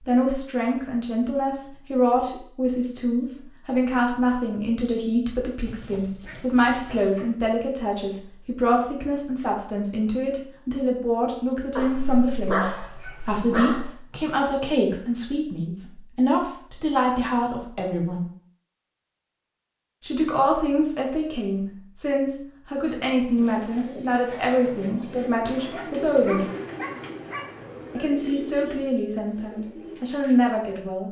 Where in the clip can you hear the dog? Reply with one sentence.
The dog can be heard from 5.7 to 7.2 s, from 11.8 to 13.9 s and from 25.6 to 28.1 s.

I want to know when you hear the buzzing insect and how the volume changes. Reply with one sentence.
The buzzing insect can't be heard in this clip.